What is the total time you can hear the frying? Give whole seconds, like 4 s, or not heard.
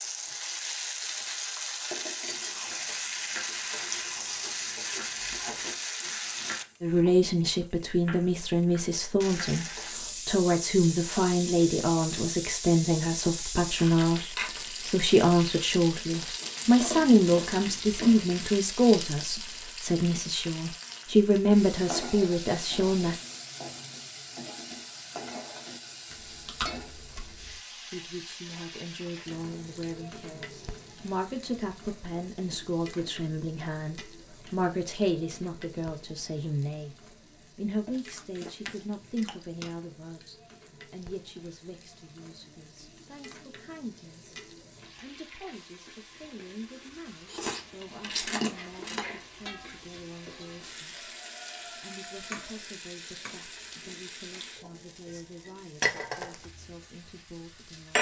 58 s.